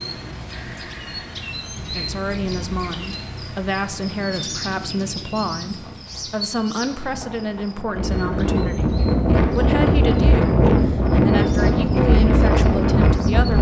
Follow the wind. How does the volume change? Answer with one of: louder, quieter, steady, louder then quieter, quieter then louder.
louder.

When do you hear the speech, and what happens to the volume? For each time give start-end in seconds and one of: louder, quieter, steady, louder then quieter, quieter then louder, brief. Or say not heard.
1.9-13.5 steady.